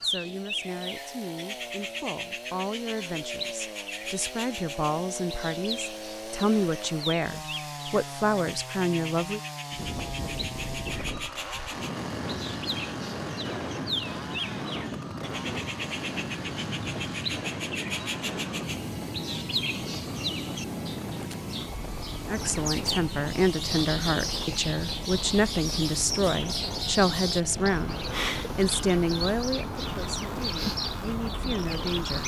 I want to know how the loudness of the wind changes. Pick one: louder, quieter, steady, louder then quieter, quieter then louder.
steady.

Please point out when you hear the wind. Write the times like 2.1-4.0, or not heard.
9.7-32.2.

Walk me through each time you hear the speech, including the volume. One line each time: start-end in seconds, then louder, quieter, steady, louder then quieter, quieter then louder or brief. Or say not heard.
0.0-9.4 louder
22.2-32.2 quieter.